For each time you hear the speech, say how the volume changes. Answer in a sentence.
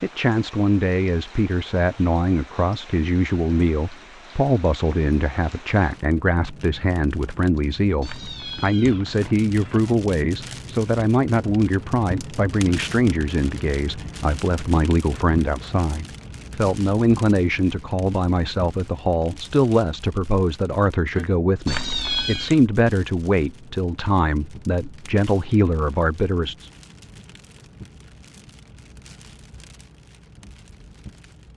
The speech can be heard from 0.0 to 26.7 s, at a steady volume.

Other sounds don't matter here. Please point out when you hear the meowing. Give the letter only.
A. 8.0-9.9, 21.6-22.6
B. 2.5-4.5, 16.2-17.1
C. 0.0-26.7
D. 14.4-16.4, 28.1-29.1
A.